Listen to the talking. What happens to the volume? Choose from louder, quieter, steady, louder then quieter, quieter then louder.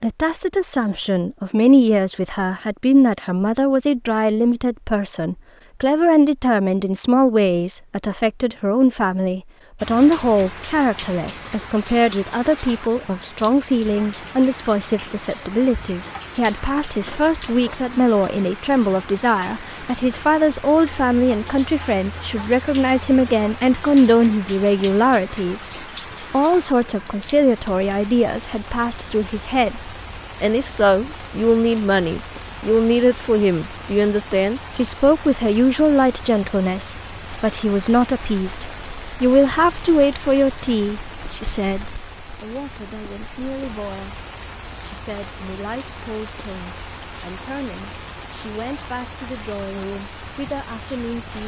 quieter.